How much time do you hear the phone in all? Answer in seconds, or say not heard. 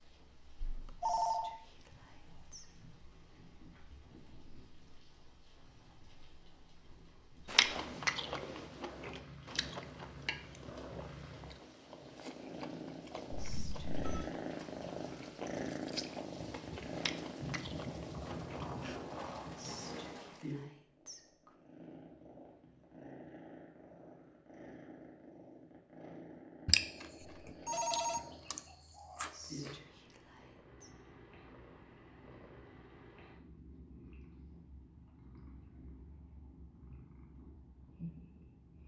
3 s.